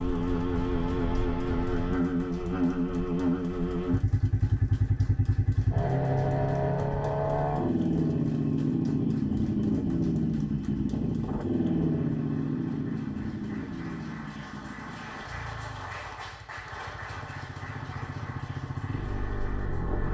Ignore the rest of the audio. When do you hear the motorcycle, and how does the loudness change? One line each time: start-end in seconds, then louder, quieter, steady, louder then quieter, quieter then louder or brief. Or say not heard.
0.0-20.1 quieter.